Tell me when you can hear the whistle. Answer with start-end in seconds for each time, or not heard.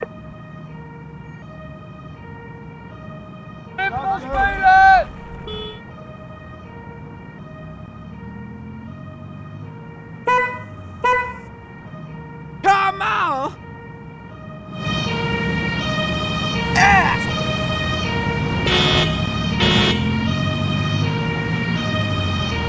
not heard.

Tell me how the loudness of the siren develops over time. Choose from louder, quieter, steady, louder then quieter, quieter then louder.
louder.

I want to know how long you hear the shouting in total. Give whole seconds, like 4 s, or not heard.
3 s.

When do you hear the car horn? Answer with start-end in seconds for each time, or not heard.
4.3-5.8, 10.2-11.4, 18.5-20.1.